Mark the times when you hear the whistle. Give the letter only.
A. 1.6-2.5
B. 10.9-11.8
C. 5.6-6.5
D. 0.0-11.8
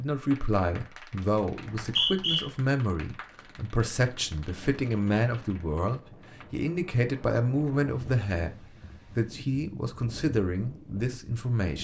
A.